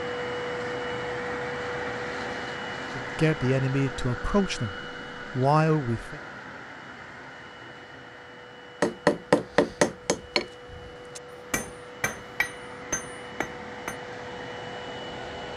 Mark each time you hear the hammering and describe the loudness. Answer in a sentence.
The hammering can be heard from 8.8 to 13.9 s, getting quieter.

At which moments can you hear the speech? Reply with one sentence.
You can hear the speech from 3.0 to 4.8 s and from 5.3 to 6.2 s.